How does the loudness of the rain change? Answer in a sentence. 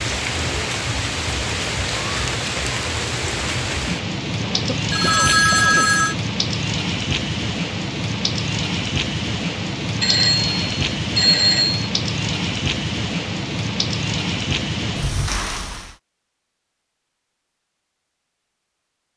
The loudness of the rain stays about the same.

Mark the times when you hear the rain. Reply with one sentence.
The rain can be heard from 0.0 to 15.9 s.